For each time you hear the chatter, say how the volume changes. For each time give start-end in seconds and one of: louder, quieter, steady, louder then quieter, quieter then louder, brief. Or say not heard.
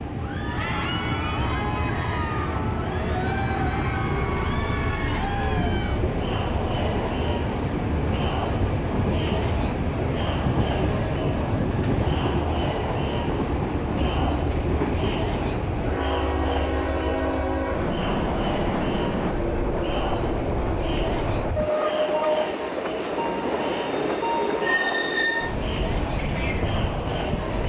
0.1-27.6 steady.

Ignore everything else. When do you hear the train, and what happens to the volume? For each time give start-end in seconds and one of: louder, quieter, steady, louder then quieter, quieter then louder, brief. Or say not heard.
0.0-27.6 steady.